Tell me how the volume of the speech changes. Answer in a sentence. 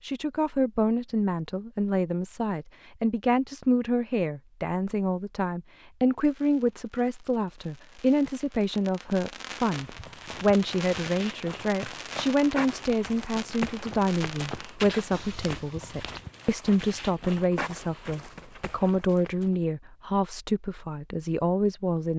The loudness of the speech stays about the same.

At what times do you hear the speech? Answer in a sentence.
The speech can be heard from 0.0 to 22.1 s.